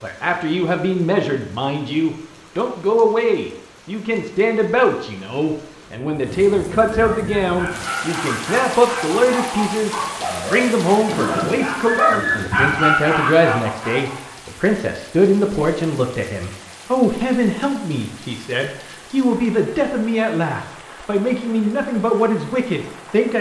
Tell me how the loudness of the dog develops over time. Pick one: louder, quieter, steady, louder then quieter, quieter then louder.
louder.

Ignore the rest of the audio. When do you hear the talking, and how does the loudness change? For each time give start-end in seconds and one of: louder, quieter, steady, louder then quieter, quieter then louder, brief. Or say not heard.
0.0-23.3 steady.